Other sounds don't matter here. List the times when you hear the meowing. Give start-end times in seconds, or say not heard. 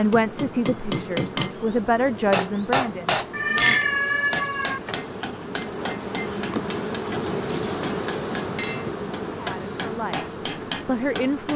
3.3-4.8.